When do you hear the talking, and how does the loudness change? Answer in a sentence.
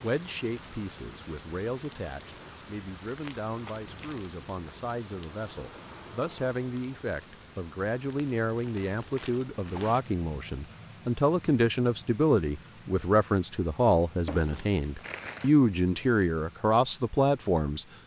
The talking can be heard from 0.0 to 17.9 s, getting louder.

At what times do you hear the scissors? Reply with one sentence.
You can't hear the scissors here.